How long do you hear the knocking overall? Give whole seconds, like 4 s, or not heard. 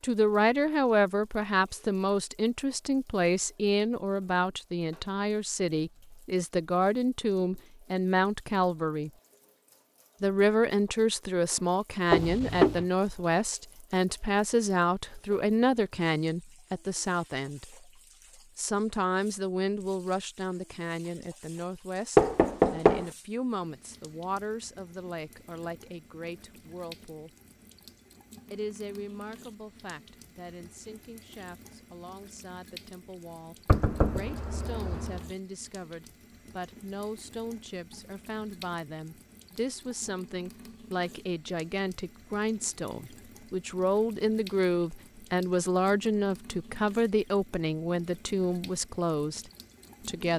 3 s.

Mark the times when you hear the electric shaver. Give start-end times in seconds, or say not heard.
not heard.